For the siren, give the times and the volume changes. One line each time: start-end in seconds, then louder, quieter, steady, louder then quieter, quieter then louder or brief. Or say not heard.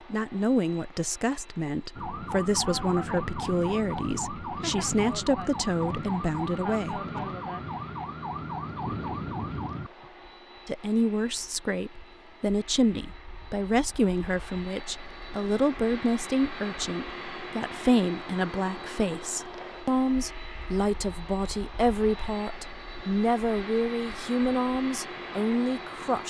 1.9-10.1 steady.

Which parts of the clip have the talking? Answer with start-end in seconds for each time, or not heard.
0.1-7.0, 10.7-26.2.